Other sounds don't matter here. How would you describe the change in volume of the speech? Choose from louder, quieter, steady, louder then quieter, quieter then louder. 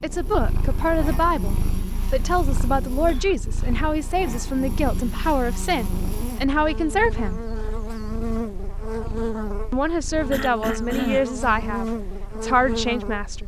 steady.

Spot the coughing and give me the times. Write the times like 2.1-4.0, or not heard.
3.0-3.8, 10.3-11.3.